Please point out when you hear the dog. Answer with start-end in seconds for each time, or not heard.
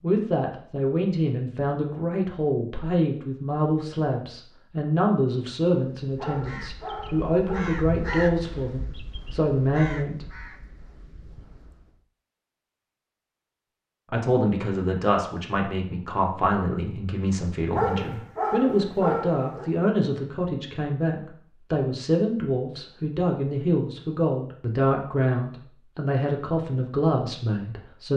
6.2-8.8, 17.7-19.7.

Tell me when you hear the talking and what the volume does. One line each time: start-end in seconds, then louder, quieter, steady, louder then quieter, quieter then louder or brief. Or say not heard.
0.0-10.2 steady
14.1-28.1 steady.